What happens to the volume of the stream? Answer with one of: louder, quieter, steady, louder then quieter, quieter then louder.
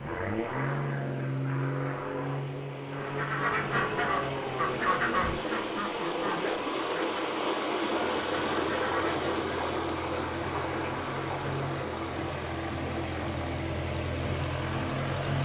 louder then quieter.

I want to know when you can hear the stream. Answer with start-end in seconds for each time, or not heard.
0.0-15.4.